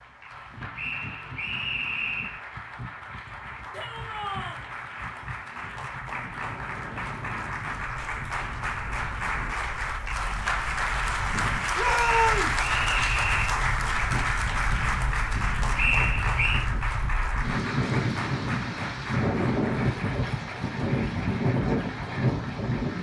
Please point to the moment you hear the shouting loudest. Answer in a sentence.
The loudest moment of the shouting is at 12 seconds.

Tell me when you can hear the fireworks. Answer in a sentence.
You can't hear the fireworks here.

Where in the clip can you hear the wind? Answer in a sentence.
The wind can be heard from 0.0 to 22.9 s.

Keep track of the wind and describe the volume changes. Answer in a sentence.
The volume of the wind goes up.